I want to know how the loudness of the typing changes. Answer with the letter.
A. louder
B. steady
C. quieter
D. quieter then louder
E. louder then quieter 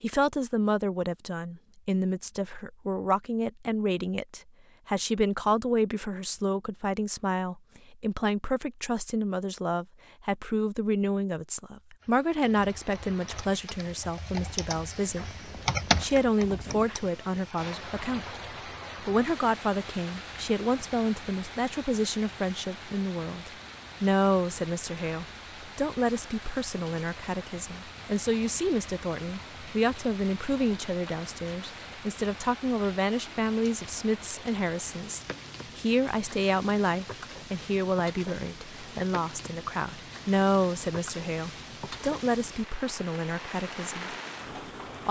E.